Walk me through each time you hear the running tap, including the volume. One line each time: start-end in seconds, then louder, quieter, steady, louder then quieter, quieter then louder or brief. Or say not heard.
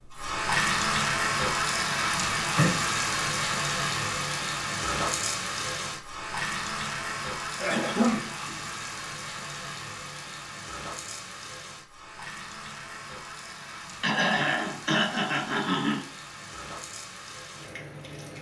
0.0-18.3 quieter.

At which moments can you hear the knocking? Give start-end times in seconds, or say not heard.
not heard.